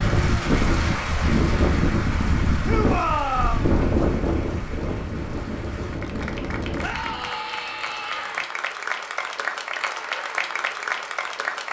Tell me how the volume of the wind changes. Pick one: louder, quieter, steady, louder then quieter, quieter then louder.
quieter.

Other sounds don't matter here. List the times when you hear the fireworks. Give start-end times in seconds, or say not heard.
not heard.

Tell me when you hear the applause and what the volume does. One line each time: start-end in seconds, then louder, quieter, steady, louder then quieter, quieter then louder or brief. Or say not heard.
0.0-11.6 quieter then louder.